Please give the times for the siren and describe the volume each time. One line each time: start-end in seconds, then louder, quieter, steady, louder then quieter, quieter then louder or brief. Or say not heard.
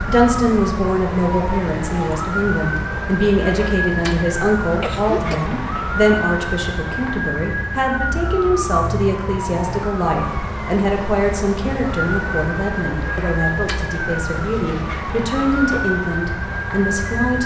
0.0-17.4 steady.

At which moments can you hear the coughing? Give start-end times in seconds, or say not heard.
4.8-5.5.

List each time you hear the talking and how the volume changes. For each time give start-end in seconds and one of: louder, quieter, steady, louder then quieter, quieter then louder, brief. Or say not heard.
0.1-17.4 steady.